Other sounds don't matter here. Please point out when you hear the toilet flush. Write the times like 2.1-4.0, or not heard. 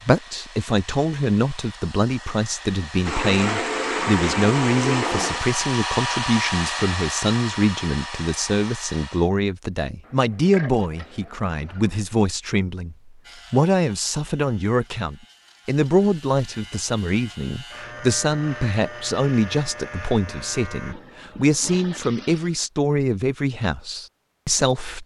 3.0-5.5, 10.1-12.1, 20.9-22.6.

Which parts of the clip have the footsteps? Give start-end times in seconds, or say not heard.
not heard.